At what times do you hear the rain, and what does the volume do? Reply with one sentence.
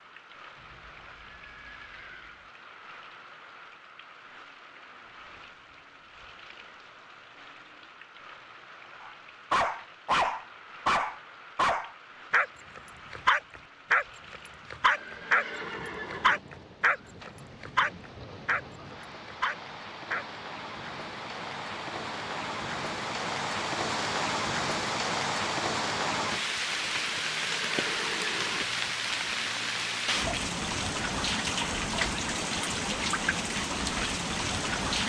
The rain can be heard from 0.0 to 35.0 s, getting louder.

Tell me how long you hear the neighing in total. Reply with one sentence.
The neighing can be heard for 5 seconds in total.